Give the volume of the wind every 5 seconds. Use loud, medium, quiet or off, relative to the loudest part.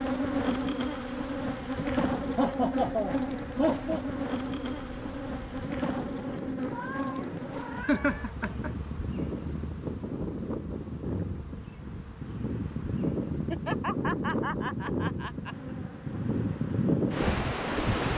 quiet, medium, loud, loud.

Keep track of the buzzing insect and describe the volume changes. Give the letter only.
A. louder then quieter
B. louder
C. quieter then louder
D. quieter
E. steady
D.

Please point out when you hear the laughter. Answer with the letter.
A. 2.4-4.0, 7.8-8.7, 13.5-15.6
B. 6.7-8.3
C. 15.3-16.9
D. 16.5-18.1
A.